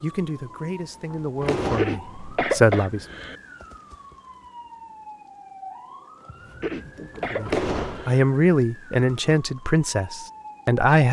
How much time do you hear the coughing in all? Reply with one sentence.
You can hear the coughing for 3 seconds altogether.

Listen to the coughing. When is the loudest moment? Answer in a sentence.
The volume of the coughing peaks at 3 seconds.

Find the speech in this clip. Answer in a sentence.
The speech can be heard from 0.0 to 3.0 s and from 7.3 to 11.0 s.